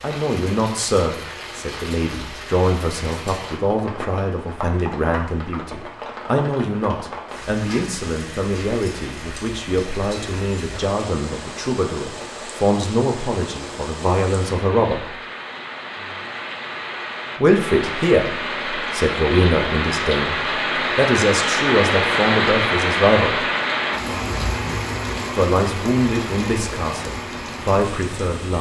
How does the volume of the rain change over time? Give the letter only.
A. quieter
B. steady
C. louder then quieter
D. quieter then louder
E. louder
E.